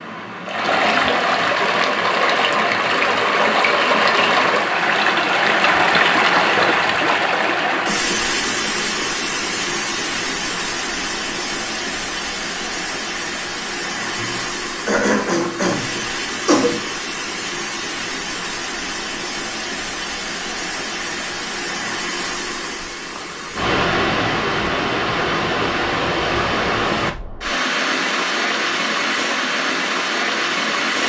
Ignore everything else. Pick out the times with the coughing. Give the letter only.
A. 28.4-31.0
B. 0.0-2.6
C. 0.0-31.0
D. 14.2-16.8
D.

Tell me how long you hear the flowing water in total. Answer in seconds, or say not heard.
31 s.